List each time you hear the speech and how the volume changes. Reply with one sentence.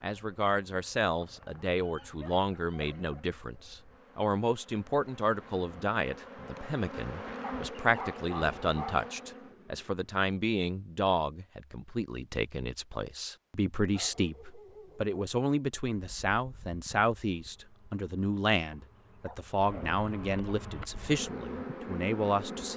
You can hear the speech from 0.0 to 22.7 s, at a steady volume.